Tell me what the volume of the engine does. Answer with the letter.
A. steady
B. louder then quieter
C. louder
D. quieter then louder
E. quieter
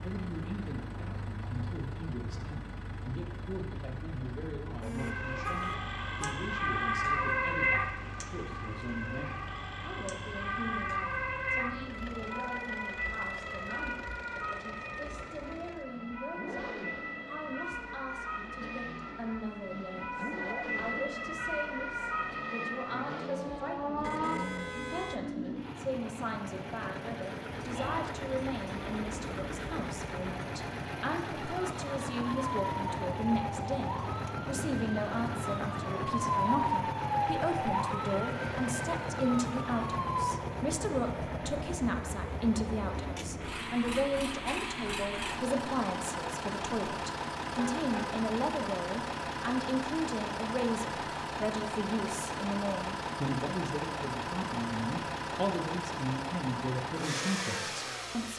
C.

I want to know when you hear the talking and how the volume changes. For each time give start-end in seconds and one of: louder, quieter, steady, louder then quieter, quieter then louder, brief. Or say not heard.
0.0-58.3 louder.